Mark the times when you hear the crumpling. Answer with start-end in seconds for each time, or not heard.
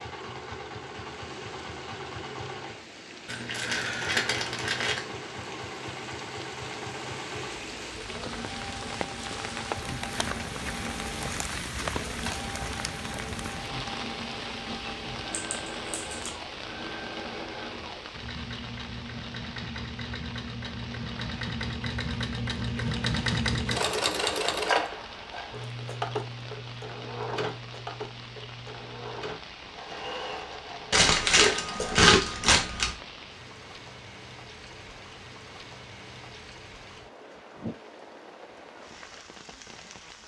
3.2-5.0, 15.3-16.3, 30.9-33.0.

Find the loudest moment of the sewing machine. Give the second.
24 s.